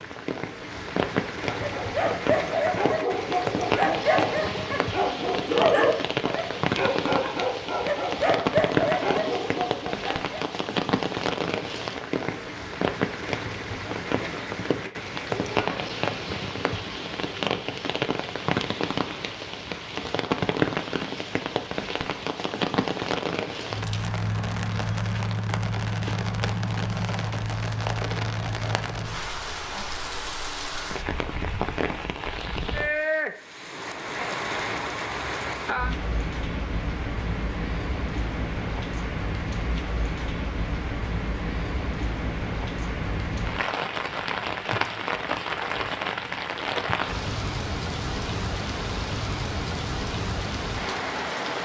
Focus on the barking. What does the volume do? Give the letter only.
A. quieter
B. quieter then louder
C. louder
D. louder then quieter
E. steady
E.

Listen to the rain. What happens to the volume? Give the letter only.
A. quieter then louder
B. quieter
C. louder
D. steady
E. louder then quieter
D.